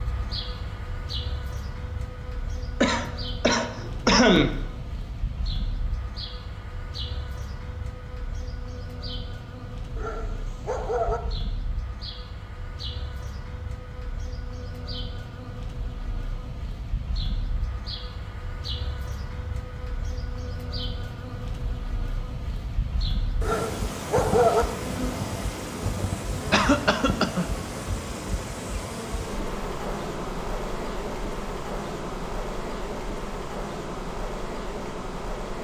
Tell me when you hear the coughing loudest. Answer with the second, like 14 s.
4 s.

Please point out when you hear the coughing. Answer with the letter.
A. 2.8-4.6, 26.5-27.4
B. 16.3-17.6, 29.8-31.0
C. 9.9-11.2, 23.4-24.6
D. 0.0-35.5
A.